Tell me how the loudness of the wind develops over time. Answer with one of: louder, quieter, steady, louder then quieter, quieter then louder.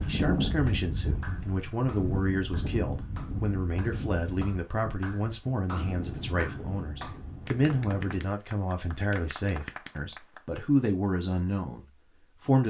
quieter.